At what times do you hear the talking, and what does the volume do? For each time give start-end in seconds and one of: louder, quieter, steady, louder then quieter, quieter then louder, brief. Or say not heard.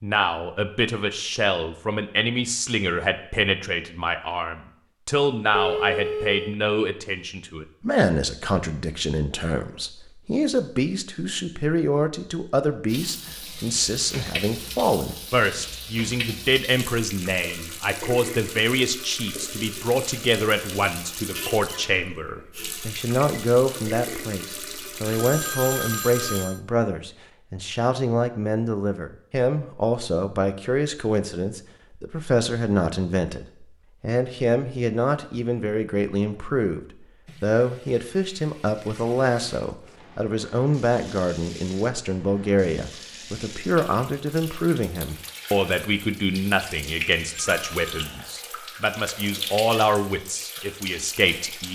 0.0-36.8 steady
37.4-51.6 steady.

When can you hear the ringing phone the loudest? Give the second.
6 s.